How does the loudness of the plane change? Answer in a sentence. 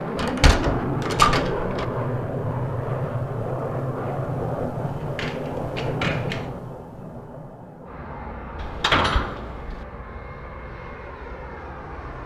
The volume of the plane goes down.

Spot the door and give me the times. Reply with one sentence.
The door can be heard from 0.1 to 1.9 s, from 4.8 to 6.5 s and from 8.6 to 9.8 s.